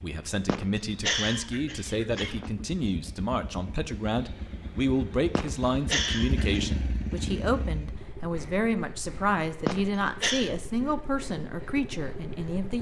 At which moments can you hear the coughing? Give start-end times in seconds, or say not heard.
0.5-2.5, 5.3-6.7, 9.7-10.5.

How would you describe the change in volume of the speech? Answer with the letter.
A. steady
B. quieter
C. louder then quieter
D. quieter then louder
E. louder
A.